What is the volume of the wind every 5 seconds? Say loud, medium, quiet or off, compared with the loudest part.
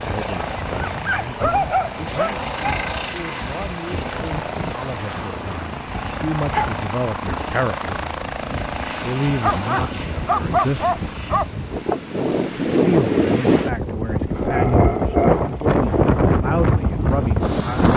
quiet, quiet, loud, loud.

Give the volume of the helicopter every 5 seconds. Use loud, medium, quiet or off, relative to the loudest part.
loud, loud, medium, quiet.